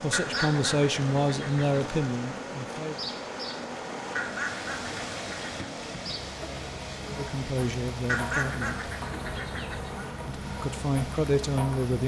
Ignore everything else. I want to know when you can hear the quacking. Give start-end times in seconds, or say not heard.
0.1-1.9, 4.2-5.5, 8.1-10.1.